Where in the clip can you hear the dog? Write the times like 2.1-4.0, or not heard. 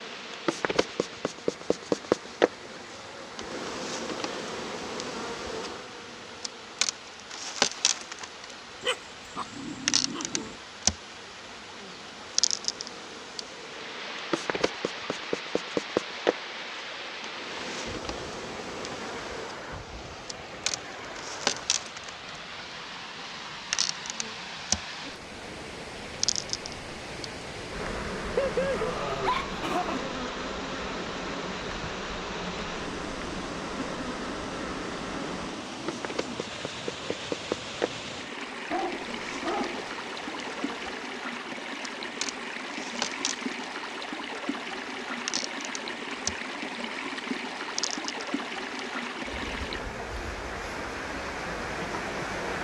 8.8-10.6, 28.4-30.1, 38.7-40.0.